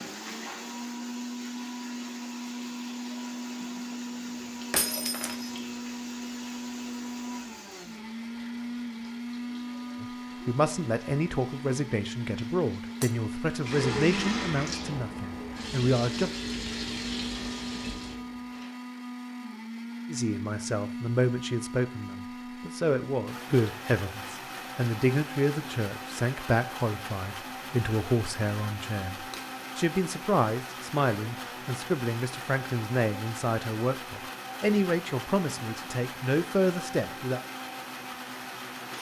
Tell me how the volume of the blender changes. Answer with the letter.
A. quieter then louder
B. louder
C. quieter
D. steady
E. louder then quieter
D.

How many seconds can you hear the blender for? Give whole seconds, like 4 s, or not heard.
39 s.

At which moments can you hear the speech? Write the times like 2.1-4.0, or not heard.
10.0-16.3, 20.1-37.4.